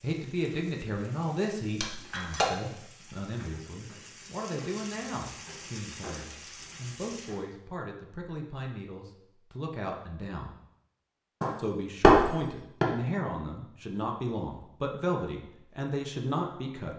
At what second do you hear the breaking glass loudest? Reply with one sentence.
The volume of the breaking glass peaks at 12 seconds.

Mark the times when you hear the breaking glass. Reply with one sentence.
You can hear the breaking glass from 1.8 to 2.5 s and from 11.4 to 12.8 s.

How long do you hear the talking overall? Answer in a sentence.
The talking can be heard for 16 seconds in total.